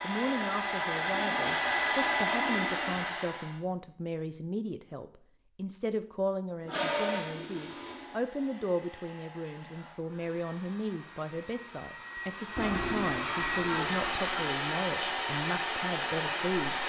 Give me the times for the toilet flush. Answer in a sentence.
You can hear the toilet flush from 1.0 to 3.0 s, from 6.7 to 8.2 s and from 12.6 to 14.6 s.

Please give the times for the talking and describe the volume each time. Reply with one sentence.
You can hear the talking from 0.0 to 16.8 s, at a steady volume.